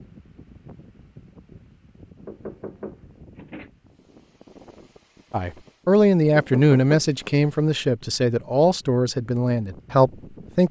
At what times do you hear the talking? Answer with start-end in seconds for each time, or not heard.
5.3-10.6.